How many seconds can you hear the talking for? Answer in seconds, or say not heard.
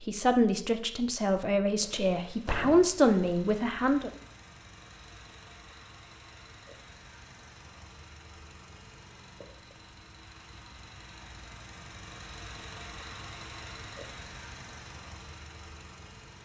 4 s.